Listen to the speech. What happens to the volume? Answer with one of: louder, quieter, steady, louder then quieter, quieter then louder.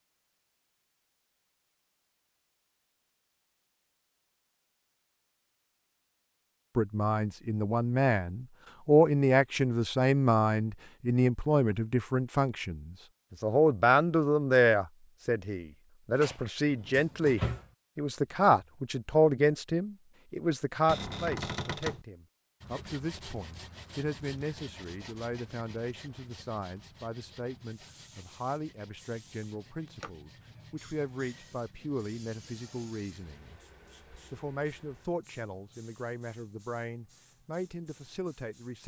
quieter.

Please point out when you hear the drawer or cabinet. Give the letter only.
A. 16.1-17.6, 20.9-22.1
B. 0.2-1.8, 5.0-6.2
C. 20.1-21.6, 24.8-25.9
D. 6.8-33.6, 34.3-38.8
A.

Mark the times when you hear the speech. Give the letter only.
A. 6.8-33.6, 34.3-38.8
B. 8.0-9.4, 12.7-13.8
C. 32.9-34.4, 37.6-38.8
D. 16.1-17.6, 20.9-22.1
A.